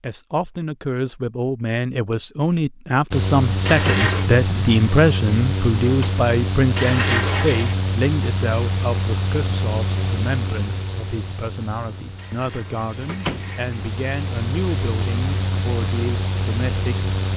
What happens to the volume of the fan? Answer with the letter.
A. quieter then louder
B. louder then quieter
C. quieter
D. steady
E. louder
A.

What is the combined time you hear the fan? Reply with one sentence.
The fan can be heard for 14 seconds in total.